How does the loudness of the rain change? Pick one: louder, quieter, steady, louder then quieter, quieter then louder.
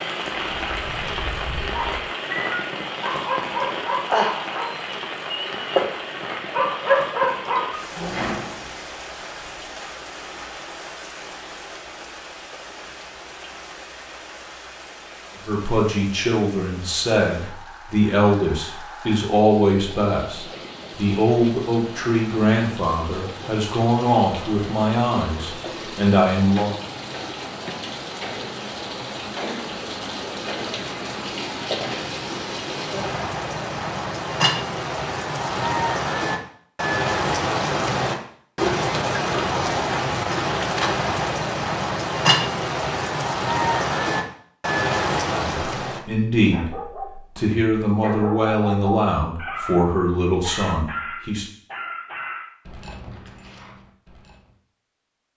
quieter then louder.